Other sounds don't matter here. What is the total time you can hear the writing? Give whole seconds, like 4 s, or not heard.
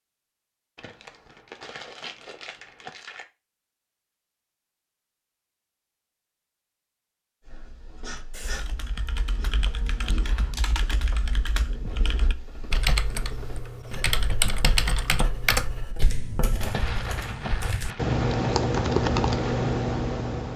9 s.